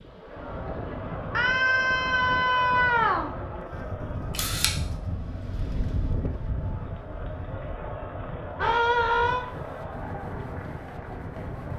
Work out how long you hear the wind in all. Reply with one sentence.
You can hear the wind for 12 seconds altogether.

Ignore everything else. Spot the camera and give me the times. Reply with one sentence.
You can hear the camera from 4.3 to 4.8 s.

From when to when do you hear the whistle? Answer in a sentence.
You can't hear the whistle here.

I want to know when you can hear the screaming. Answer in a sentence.
You can hear the screaming from 1.3 to 3.3 s and from 8.6 to 9.4 s.